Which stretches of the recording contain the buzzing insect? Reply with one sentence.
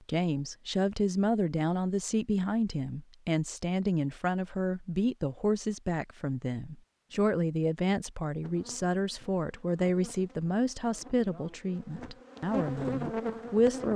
The buzzing insect can be heard from 8.4 to 13.9 s.